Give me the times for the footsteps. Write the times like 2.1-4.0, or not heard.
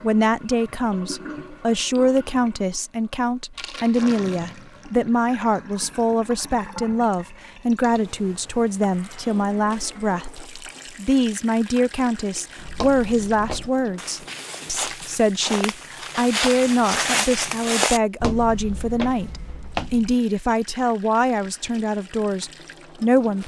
12.6-20.1.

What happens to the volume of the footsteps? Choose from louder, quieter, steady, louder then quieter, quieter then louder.
louder then quieter.